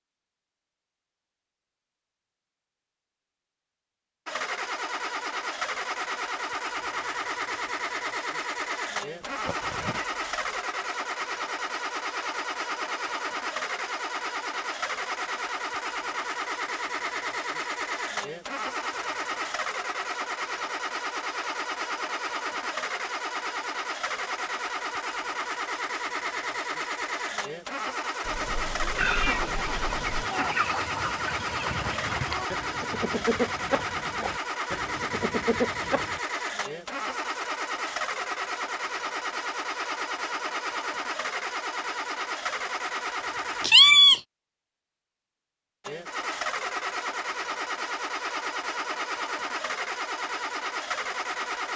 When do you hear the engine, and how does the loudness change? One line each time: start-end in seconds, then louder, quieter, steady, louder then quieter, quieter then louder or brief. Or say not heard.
4.2-43.7 steady
45.8-51.7 steady.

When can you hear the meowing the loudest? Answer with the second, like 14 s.
44 s.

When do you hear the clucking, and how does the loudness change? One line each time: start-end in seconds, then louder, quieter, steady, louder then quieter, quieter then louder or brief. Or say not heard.
28.9-36.2 steady.